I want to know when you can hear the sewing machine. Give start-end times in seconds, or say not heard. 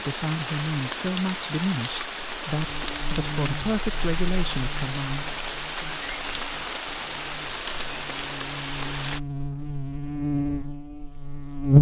not heard.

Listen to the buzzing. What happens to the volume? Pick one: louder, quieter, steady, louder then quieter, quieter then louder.
quieter then louder.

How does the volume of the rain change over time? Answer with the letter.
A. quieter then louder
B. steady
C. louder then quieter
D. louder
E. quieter
B.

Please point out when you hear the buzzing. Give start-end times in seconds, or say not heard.
2.5-11.7.